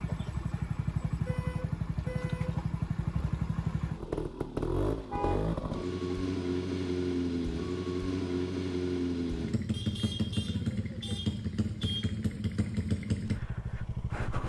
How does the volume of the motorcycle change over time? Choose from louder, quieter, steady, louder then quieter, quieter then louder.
steady.